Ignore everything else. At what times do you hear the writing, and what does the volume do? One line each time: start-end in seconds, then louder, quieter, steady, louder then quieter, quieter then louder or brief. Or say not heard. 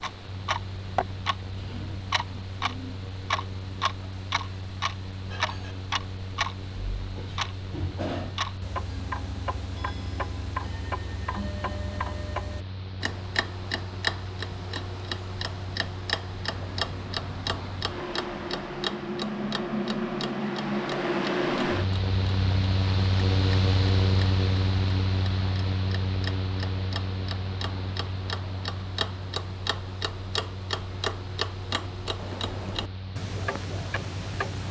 not heard.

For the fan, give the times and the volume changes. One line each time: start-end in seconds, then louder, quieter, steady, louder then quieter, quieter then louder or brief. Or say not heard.
0.0-34.6 louder then quieter.